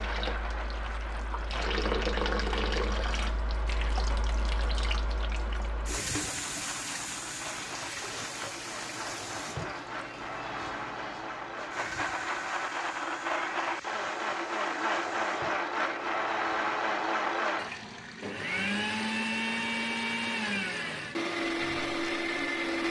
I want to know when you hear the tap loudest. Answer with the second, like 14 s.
2 s.